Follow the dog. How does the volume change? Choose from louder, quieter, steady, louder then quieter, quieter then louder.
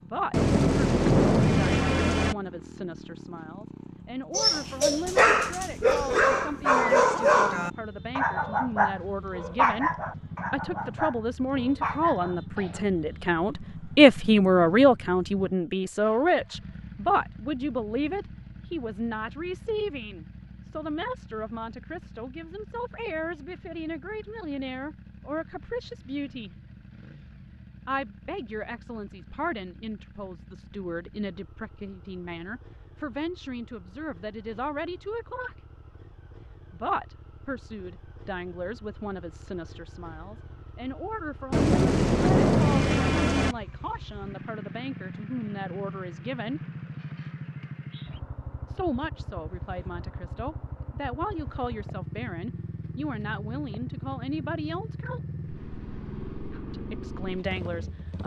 quieter.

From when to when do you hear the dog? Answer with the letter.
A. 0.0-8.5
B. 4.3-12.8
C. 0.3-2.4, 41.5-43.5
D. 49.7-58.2
B.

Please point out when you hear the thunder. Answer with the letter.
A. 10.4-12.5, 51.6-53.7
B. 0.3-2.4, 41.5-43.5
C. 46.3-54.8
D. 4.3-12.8
B.